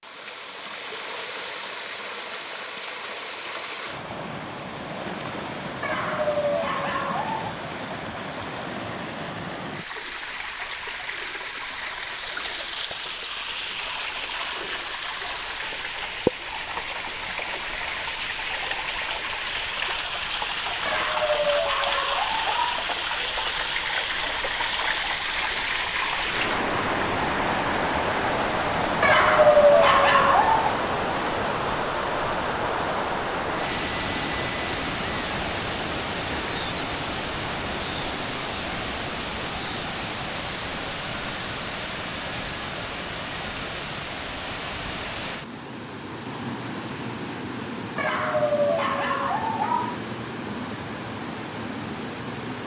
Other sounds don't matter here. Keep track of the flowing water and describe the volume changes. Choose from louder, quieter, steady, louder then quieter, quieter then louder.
louder then quieter.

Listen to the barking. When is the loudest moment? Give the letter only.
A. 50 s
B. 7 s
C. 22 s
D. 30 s
D.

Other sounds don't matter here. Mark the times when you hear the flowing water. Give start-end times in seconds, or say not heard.
0.0-52.6.